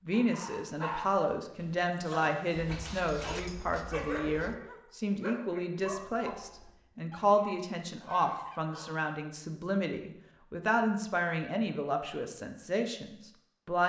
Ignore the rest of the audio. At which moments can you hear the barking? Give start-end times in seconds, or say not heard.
0.1-6.7.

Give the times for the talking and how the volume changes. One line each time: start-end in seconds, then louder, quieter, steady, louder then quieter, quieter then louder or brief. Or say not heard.
0.0-13.8 steady.